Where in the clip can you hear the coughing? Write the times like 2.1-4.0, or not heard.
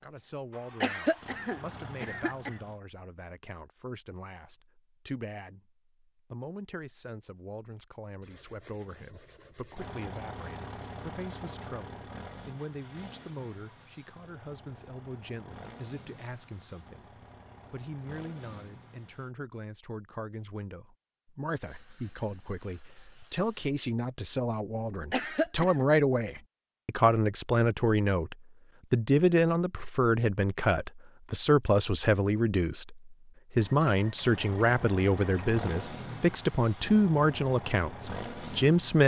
0.8-2.5, 25.1-25.9.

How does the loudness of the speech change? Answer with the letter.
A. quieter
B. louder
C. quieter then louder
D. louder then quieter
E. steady
B.